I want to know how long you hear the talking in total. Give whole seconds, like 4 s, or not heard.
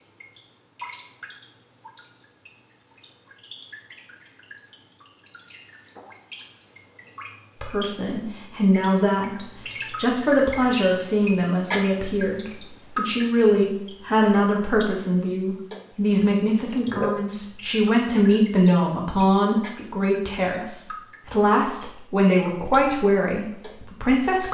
17 s.